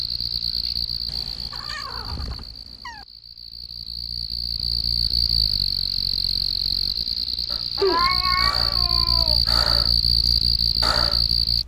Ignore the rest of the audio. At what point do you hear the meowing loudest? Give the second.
8 s.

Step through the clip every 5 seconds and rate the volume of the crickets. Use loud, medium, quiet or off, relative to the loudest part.
medium, loud, loud.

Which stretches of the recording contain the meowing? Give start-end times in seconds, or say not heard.
1.1-3.0, 7.8-9.4.